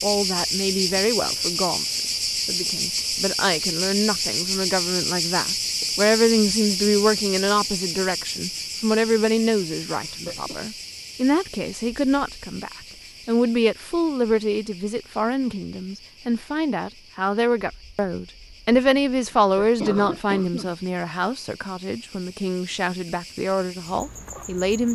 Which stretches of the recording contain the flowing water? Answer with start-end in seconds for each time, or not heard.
not heard.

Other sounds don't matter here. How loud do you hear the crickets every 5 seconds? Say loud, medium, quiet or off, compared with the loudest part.
loud, loud, quiet, quiet, quiet.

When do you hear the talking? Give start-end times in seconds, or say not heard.
0.0-24.9.